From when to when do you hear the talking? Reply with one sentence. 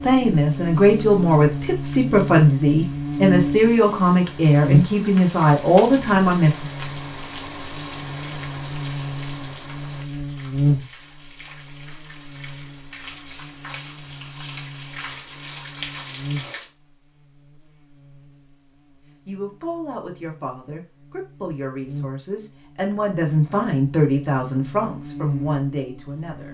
You can hear the talking from 0.0 to 6.8 s and from 19.2 to 26.5 s.